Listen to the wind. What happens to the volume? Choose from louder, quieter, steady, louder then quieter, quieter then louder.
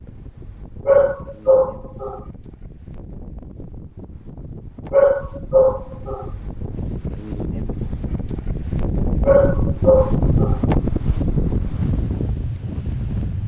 louder.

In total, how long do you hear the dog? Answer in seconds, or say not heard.
4 s.